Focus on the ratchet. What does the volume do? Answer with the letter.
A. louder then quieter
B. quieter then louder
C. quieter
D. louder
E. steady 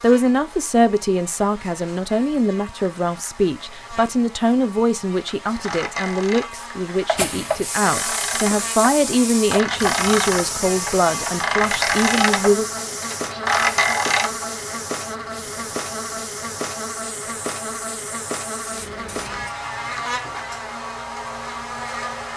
D.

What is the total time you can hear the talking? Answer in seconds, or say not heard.
13 s.